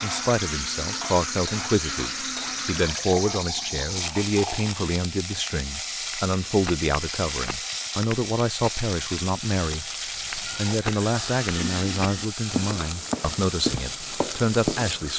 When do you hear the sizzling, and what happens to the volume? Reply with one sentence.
The sizzling can be heard from 0.0 to 15.1 s, at a steady volume.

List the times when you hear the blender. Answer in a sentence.
You can hear the blender from 0.0 to 2.9 s.